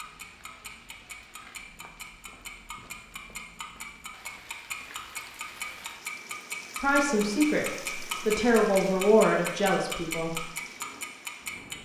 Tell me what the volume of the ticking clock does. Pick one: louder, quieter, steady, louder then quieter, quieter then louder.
louder.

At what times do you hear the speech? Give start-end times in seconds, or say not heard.
6.8-10.4.